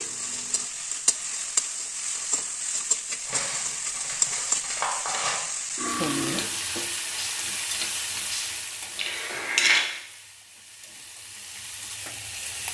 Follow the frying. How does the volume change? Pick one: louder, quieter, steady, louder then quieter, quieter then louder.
quieter.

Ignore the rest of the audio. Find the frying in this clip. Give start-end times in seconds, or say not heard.
0.0-12.6.